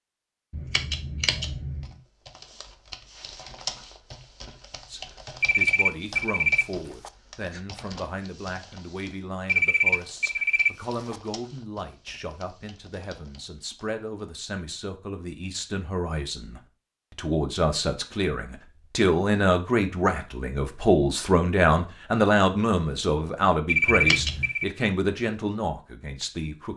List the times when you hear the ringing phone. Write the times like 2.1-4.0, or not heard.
5.4-7.1, 9.4-11.2, 23.6-24.7.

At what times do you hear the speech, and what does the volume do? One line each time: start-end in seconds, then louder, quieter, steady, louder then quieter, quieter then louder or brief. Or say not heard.
4.9-26.7 louder.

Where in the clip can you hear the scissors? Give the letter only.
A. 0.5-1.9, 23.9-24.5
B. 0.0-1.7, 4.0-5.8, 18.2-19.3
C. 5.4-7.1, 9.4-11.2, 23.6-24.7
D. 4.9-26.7
A.